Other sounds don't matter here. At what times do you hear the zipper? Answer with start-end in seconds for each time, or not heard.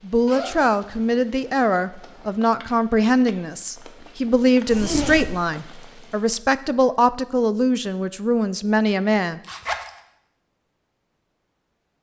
0.2-2.2, 4.7-5.5, 9.4-9.9.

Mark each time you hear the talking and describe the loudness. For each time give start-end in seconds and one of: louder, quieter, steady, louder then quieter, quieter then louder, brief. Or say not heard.
0.0-9.4 steady.